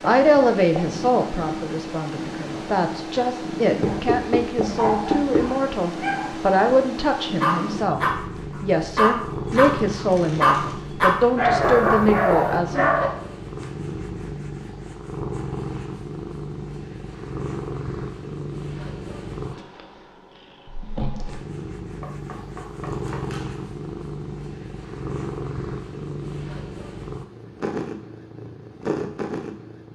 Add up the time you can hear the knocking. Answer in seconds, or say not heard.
4 s.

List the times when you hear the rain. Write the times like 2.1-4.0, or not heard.
not heard.